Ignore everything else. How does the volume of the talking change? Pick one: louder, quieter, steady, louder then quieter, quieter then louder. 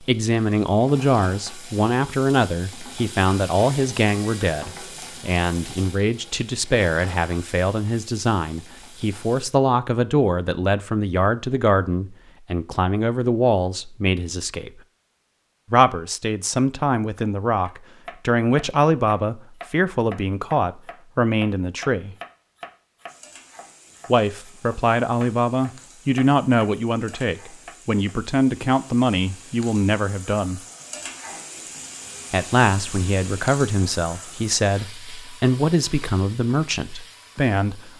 steady.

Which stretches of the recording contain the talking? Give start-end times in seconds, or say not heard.
0.0-14.8, 15.7-22.1, 24.1-30.6, 32.3-37.9.